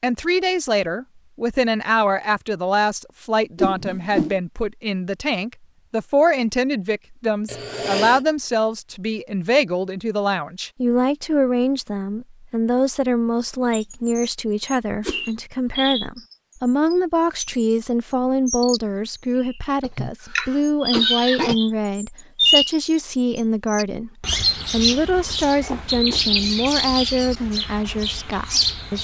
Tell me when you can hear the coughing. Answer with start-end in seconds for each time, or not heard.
7.5-8.2, 19.8-21.6.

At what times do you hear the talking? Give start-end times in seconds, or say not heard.
0.0-28.9.